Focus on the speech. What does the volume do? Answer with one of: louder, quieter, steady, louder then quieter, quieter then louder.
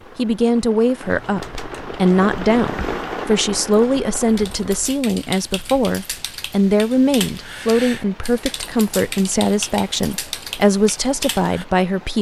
steady.